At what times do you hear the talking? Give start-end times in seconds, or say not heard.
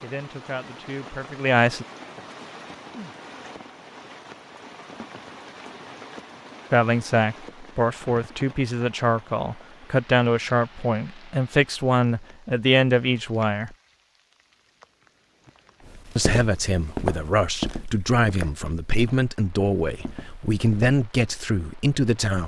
0.0-1.9, 6.7-13.7, 16.1-22.4.